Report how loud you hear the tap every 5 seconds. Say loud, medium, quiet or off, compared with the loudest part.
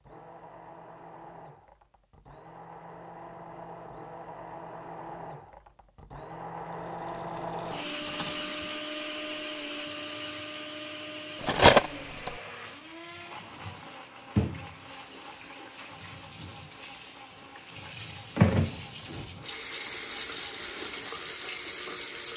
off, quiet, medium, loud, loud.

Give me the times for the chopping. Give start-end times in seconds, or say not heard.
not heard.